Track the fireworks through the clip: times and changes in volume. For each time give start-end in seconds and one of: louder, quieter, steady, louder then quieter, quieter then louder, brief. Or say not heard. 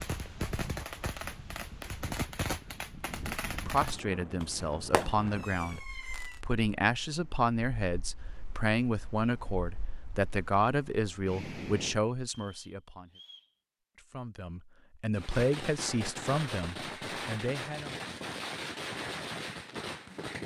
0.0-6.4 steady
15.2-20.4 steady.